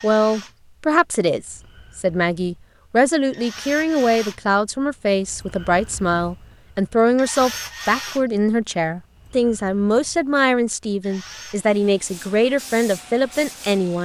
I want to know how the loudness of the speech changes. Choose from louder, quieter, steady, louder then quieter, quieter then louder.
steady.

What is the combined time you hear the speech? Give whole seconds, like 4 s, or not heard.
14 s.